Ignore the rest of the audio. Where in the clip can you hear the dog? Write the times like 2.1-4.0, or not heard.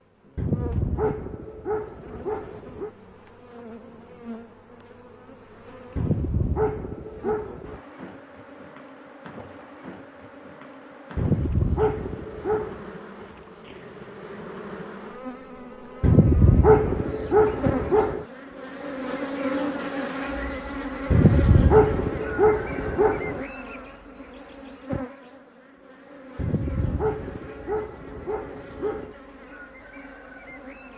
0.3-2.9, 6.0-7.8, 11.2-12.8, 16.0-18.2, 21.1-23.4, 26.4-29.1.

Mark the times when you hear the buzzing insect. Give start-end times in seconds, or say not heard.
0.0-30.9.